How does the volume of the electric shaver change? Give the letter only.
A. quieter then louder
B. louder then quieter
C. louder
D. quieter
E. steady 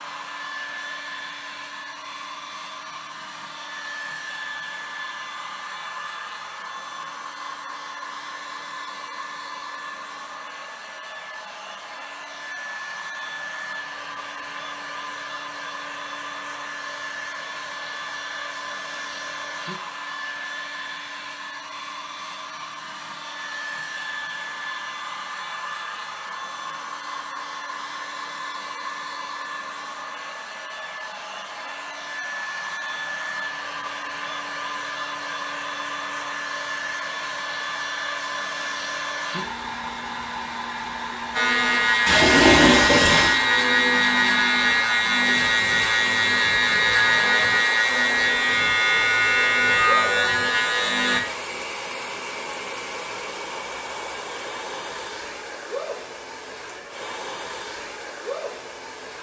E.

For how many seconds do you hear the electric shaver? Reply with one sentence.
You can hear the electric shaver for 10 seconds altogether.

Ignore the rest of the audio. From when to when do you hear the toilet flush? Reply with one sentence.
The toilet flush can be heard from 42.0 to 43.4 s.